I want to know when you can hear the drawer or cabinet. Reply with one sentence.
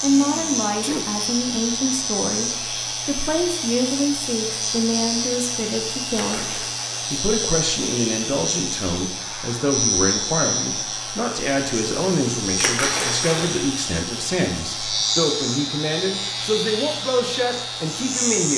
The drawer or cabinet can't be heard in this clip.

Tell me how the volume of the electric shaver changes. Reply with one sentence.
The volume of the electric shaver stays about the same.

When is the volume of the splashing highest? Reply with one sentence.
The volume of the splashing peaks at 13 seconds.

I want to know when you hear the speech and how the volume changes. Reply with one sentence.
You can hear the speech from 0.0 to 18.5 s, at a steady volume.